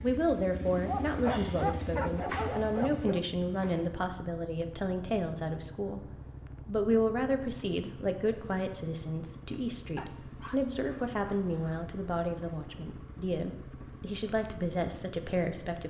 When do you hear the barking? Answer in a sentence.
You can hear the barking from 0.8 to 3.2 s and from 9.9 to 11.8 s.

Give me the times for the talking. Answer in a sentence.
You can hear the talking from 0.0 to 6.0 s and from 6.7 to 15.8 s.